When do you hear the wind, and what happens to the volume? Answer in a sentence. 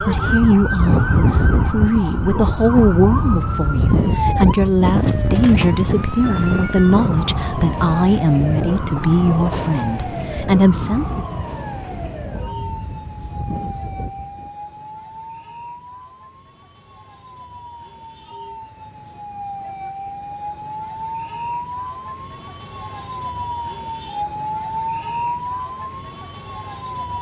You can hear the wind from 0.0 to 14.5 s, getting quieter.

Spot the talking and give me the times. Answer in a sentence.
You can hear the talking from 0.0 to 11.2 s.